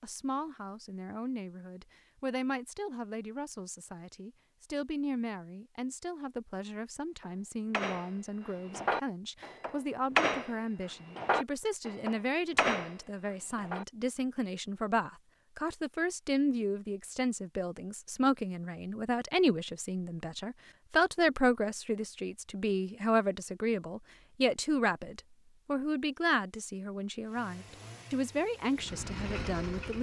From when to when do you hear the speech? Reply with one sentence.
The speech can be heard from 0.0 to 29.9 s.